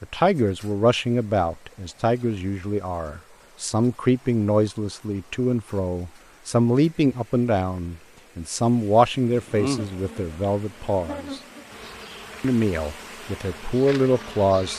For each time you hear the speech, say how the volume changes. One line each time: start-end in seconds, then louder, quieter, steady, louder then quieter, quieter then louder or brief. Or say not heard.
0.0-11.4 steady
12.4-14.7 brief.